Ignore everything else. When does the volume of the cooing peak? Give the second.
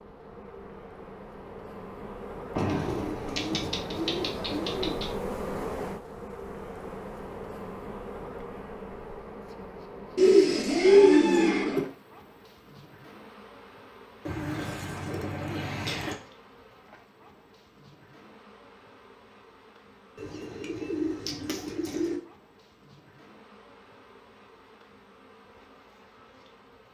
11 s.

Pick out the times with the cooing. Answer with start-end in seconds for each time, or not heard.
2.5-5.0, 10.2-11.8, 14.2-16.1, 20.1-22.2.